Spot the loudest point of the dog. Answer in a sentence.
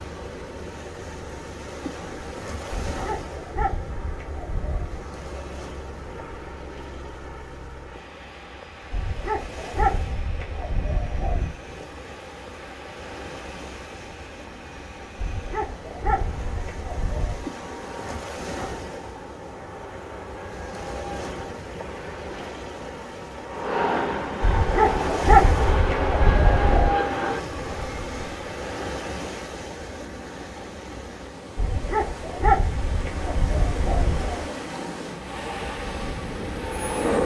The loudest moment of the dog is at 25 seconds.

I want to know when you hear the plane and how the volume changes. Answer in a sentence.
The plane can be heard from 0.0 to 28.6 s, getting louder; and briefly from 35.1 to 37.2 s.